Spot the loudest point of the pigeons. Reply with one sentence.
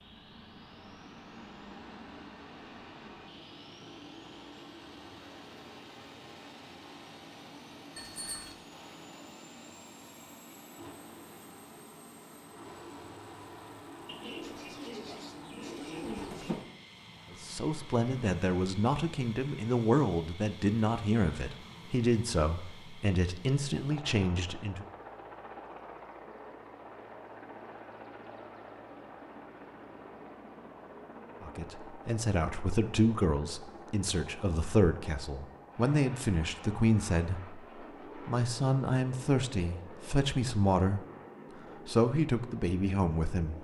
The loudest moment of the pigeons is at 16 seconds.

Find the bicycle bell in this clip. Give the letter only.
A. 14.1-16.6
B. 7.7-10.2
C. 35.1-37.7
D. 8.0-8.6
D.